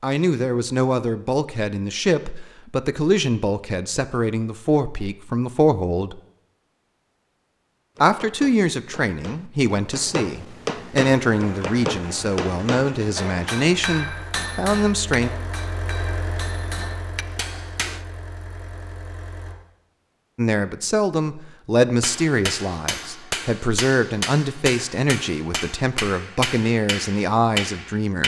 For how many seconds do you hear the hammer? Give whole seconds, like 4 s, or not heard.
16 s.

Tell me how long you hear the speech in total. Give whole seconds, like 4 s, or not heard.
21 s.